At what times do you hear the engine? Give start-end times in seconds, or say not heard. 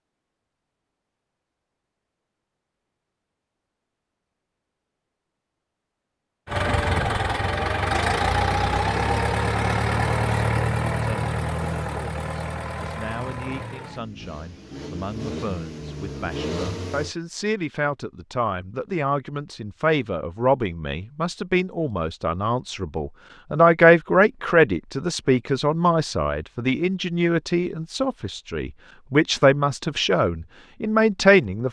6.5-17.1.